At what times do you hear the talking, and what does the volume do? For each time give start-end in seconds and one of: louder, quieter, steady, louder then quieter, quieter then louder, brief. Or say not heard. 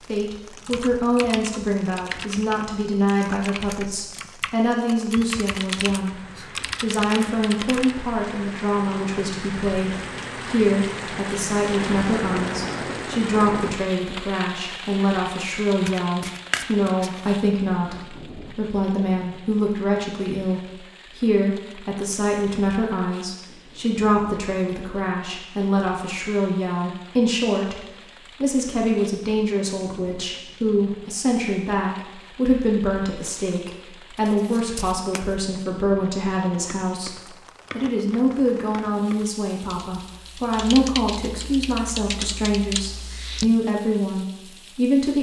0.0-45.1 steady.